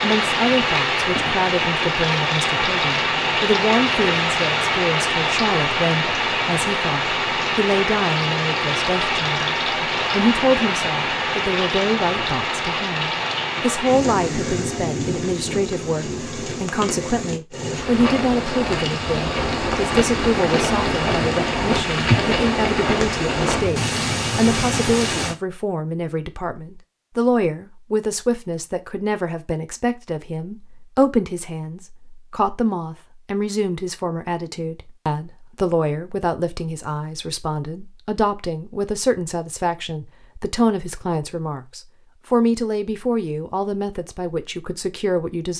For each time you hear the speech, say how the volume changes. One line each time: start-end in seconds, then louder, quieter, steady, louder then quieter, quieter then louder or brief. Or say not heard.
0.0-45.5 steady.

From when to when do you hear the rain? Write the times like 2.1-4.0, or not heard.
0.0-25.4.